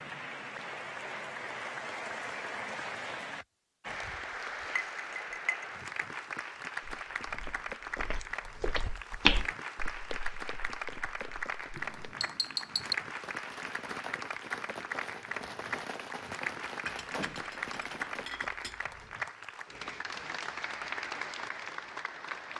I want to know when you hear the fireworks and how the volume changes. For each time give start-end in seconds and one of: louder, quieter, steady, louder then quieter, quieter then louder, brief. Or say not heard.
12.8-18.3 steady.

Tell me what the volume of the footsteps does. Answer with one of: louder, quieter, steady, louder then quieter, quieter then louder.
louder then quieter.